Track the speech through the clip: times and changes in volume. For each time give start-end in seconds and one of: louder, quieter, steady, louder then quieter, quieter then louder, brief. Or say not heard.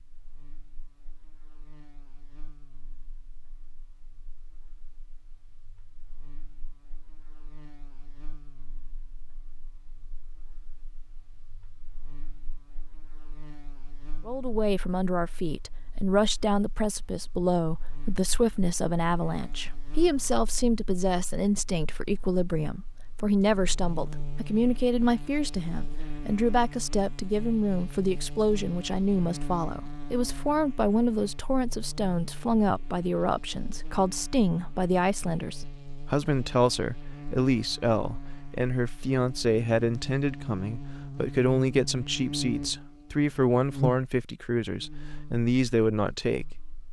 14.2-46.6 steady.